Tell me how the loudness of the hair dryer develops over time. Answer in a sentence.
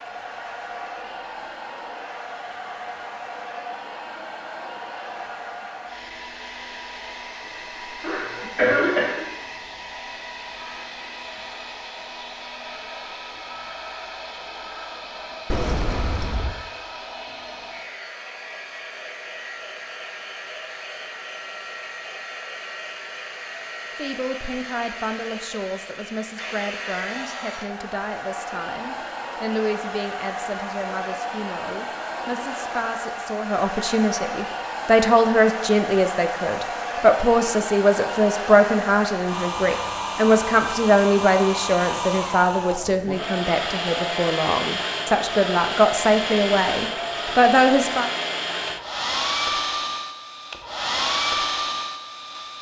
The loudness of the hair dryer goes up.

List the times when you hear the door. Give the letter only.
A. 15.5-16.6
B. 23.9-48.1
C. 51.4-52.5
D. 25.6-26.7
A.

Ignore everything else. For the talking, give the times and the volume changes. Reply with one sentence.
You can hear the talking from 23.9 to 48.1 s, getting louder.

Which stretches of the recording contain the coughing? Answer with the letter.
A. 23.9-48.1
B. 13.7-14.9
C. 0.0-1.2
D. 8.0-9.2
D.